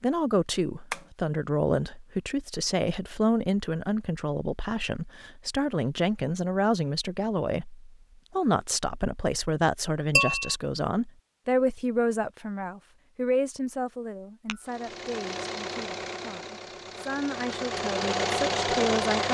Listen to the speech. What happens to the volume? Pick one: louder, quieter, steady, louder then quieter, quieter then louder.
quieter.